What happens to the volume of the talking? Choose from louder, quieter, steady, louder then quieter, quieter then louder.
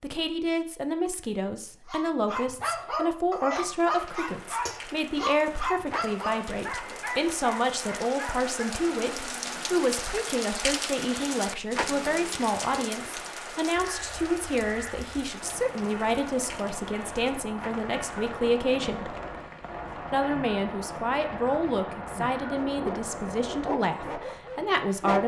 steady.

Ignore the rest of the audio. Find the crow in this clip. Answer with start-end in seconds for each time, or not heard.
13.8-24.1.